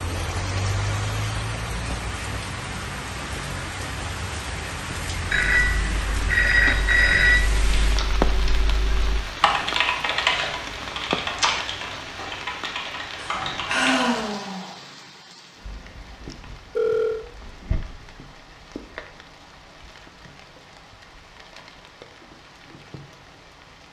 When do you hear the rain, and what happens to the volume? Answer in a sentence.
The rain can be heard from 0.0 to 23.8 s, getting quieter.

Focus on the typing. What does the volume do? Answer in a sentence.
The loudness of the typing goes up, then down.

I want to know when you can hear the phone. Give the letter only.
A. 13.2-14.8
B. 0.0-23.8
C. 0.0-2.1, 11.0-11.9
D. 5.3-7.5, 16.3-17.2
D.